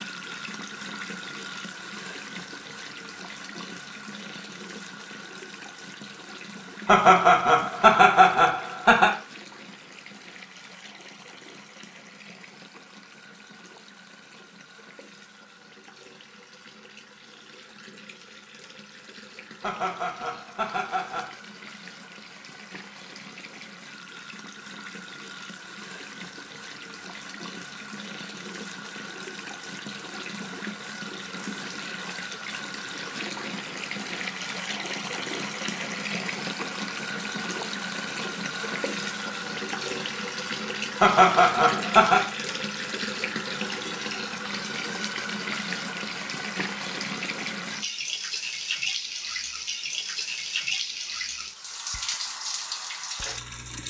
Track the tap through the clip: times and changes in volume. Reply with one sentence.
The tap can be heard from 0.0 to 53.8 s, getting quieter then louder.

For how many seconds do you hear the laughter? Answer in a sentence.
The laughter can be heard for 5 seconds in total.